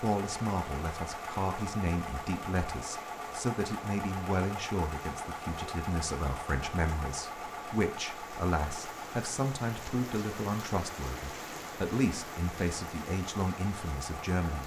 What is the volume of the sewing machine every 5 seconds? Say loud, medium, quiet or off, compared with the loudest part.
loud, loud, medium.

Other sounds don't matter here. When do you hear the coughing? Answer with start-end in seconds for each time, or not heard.
not heard.